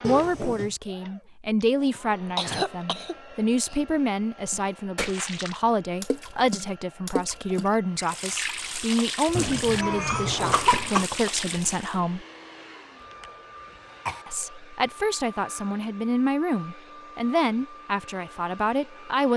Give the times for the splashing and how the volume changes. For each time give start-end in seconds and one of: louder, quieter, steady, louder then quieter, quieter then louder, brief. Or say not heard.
4.5-11.9 steady.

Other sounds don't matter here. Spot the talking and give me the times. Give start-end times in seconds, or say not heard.
0.0-12.2, 14.2-19.3.